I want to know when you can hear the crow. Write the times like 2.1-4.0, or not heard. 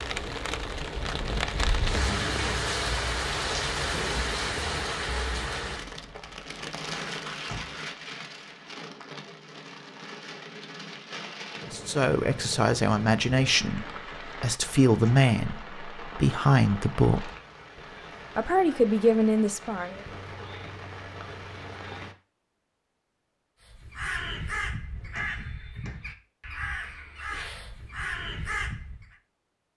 23.6-29.1.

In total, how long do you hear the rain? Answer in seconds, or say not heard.
22 s.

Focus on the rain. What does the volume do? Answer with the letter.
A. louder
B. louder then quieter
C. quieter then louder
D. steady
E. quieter
E.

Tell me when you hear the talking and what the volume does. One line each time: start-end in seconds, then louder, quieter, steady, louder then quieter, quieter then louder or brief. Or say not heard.
11.7-17.3 steady
18.4-20.0 brief.